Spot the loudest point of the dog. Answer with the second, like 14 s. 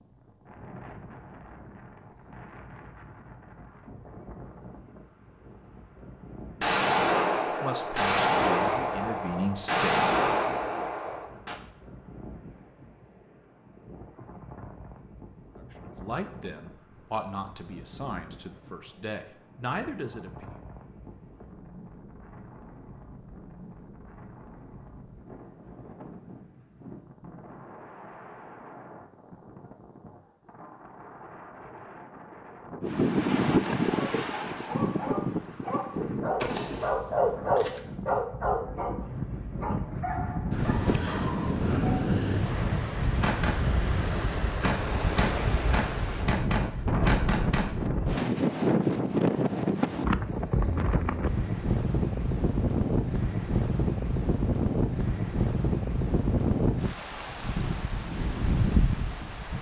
37 s.